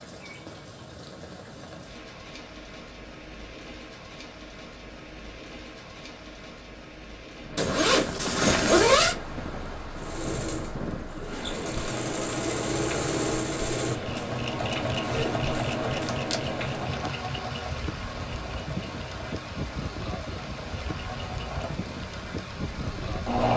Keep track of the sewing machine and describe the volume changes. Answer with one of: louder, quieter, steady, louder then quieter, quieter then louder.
quieter.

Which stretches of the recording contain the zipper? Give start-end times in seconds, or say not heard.
7.5-9.2, 14.9-16.4.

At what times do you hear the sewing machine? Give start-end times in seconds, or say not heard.
9.9-23.5.